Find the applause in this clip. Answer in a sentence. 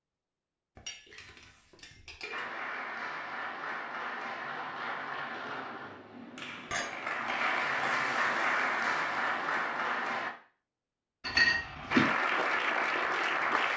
The applause can be heard from 2.3 to 10.3 s and from 11.9 to 13.7 s.